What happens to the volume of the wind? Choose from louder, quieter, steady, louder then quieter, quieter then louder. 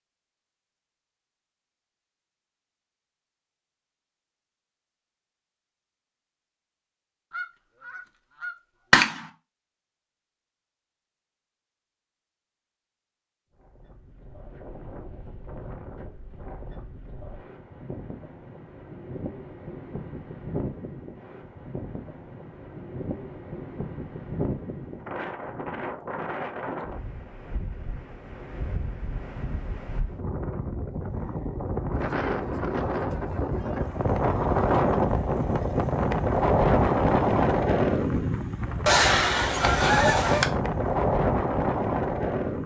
louder.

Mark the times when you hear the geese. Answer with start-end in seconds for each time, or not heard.
7.3-9.3, 38.9-40.5.